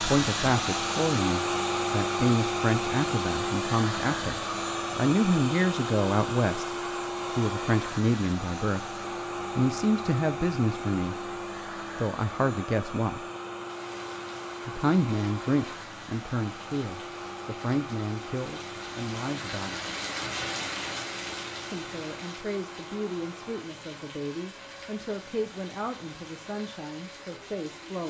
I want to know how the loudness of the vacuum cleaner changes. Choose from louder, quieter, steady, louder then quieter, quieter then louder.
quieter.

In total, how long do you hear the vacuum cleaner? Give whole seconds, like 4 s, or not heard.
28 s.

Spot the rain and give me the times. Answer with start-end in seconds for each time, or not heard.
13.6-28.0.